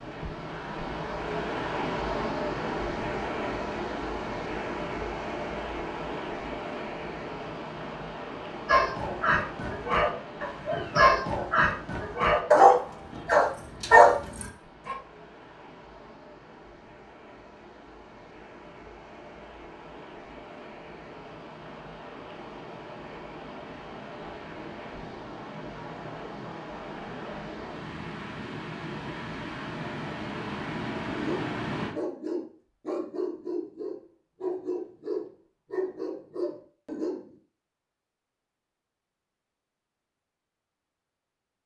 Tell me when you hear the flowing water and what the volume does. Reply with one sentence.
The flowing water can be heard from 0.0 to 31.9 s, getting quieter then louder.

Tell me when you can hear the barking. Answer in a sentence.
You can hear the barking from 8.7 to 14.9 s and from 31.1 to 37.2 s.